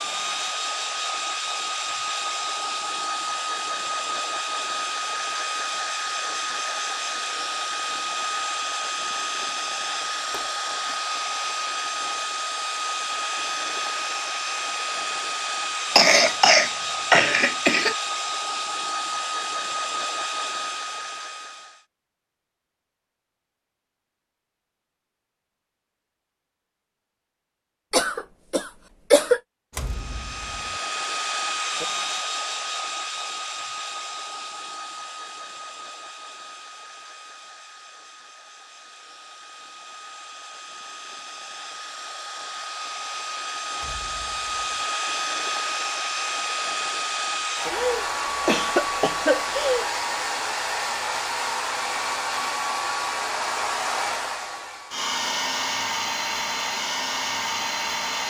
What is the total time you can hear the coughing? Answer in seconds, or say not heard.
6 s.